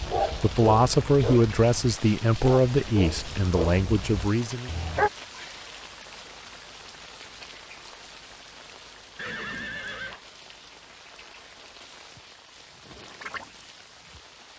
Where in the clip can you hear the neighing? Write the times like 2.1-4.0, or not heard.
9.2-10.2.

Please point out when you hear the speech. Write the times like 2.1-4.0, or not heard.
0.2-4.8.